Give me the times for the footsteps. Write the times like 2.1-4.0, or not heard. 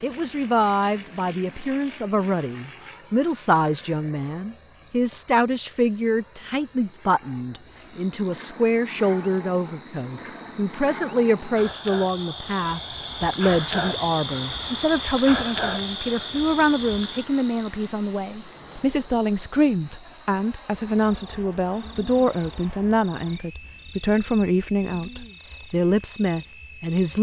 not heard.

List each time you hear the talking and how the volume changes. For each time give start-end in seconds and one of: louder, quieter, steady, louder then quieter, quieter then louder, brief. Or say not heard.
0.0-27.1 steady.